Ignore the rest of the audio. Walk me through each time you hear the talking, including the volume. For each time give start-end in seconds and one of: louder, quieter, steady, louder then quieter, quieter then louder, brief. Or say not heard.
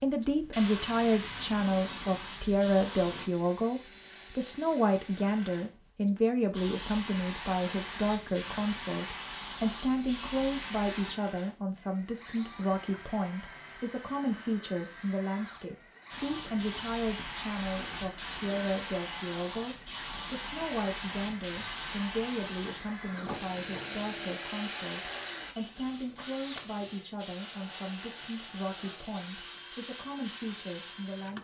0.0-31.3 quieter.